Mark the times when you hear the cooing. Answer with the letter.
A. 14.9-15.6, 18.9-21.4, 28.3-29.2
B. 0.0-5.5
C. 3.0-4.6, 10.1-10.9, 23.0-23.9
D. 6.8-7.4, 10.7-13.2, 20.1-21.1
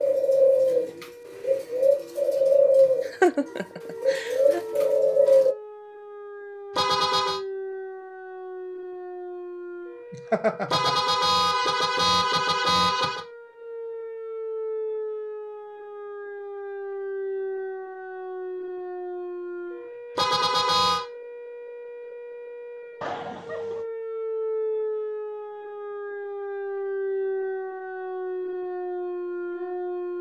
B.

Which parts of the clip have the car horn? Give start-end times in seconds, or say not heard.
6.8-7.4, 10.7-13.2, 20.1-21.1.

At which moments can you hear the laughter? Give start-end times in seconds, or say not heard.
3.0-4.6, 10.1-10.9, 23.0-23.9.